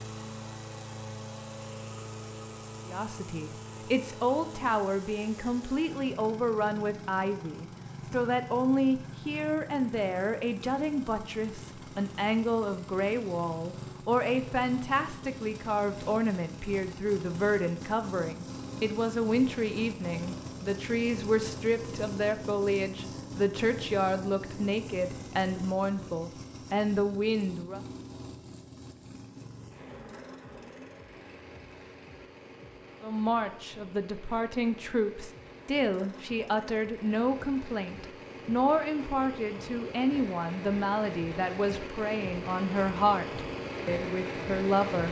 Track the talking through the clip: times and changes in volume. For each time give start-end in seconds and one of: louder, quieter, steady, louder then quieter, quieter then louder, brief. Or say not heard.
2.9-27.8 steady
33.0-45.0 steady.